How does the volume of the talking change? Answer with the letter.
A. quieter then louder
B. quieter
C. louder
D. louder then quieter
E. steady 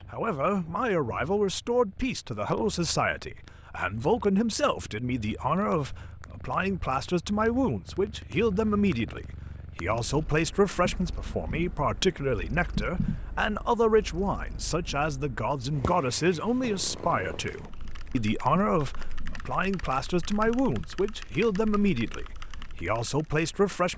E.